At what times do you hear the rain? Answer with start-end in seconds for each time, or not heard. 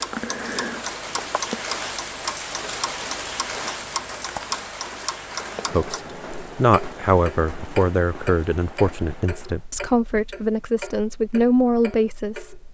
0.0-9.7.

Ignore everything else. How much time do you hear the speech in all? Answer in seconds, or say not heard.
7 s.